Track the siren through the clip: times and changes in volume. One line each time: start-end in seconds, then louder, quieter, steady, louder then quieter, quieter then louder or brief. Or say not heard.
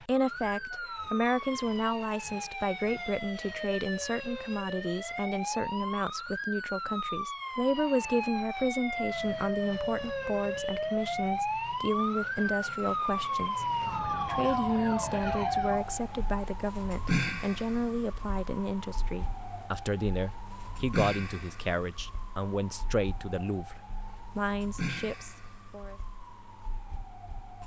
0.0-27.6 louder then quieter.